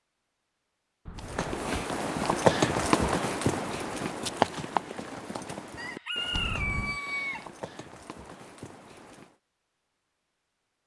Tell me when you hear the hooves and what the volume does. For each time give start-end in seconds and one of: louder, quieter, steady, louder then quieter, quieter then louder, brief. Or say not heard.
1.1-9.3 quieter.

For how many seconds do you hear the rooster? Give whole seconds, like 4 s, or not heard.
2 s.